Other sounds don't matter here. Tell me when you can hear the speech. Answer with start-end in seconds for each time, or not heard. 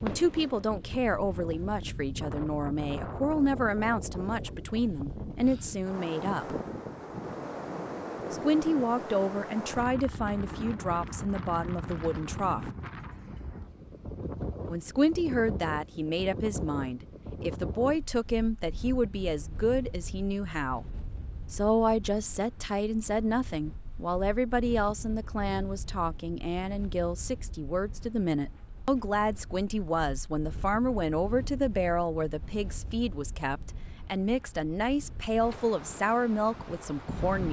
0.0-6.5, 8.3-12.7, 14.7-20.9, 21.5-37.4.